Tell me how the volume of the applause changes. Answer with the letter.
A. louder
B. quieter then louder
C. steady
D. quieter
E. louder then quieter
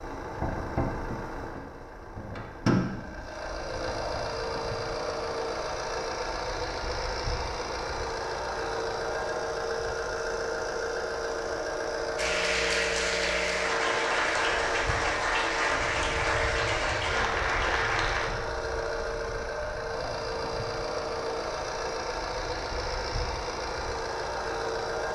C.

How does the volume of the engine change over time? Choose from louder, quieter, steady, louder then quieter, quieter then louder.
steady.